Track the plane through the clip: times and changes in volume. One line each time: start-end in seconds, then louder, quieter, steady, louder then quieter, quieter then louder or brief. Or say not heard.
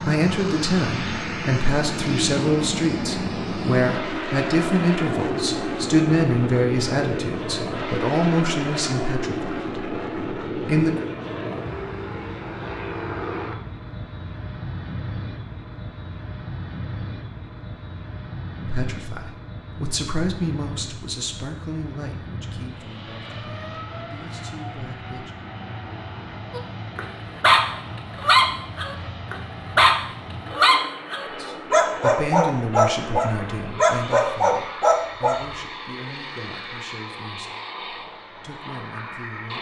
0.0-39.5 quieter.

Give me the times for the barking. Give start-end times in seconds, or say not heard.
26.5-35.5.